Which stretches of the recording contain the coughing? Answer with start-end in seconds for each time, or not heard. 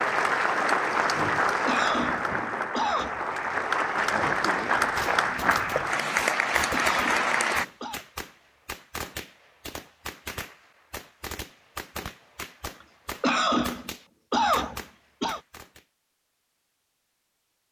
1.6-3.2, 6.7-8.0, 13.2-15.4.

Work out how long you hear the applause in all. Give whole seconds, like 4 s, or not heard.
8 s.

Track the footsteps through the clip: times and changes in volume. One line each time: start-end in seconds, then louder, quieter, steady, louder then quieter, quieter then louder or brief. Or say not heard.
not heard.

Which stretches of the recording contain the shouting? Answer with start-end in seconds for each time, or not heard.
not heard.